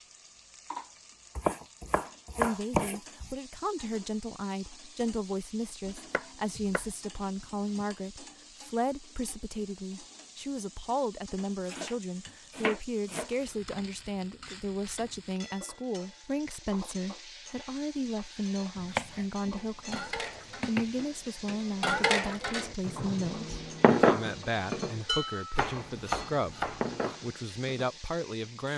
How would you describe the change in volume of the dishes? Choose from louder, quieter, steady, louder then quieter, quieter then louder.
louder then quieter.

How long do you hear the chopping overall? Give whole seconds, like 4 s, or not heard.
9 s.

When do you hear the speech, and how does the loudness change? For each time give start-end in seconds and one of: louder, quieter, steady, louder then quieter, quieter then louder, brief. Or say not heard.
2.4-28.7 steady.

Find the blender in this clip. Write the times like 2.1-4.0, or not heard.
not heard.